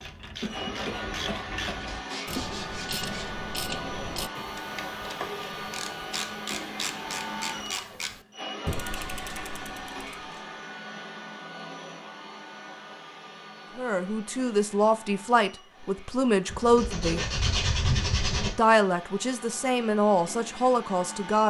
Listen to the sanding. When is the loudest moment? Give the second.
18 s.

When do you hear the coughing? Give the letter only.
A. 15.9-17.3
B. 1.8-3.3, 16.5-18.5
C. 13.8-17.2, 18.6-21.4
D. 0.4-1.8
D.